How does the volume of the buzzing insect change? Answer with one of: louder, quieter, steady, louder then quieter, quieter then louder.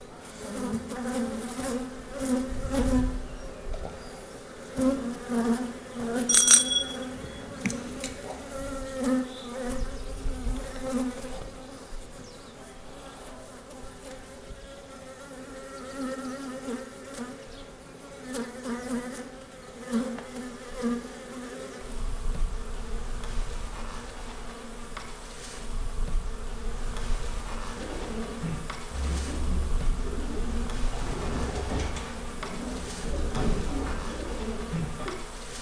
quieter.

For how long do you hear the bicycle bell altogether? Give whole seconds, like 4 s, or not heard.
2 s.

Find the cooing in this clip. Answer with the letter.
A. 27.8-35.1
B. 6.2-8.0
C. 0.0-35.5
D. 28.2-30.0
A.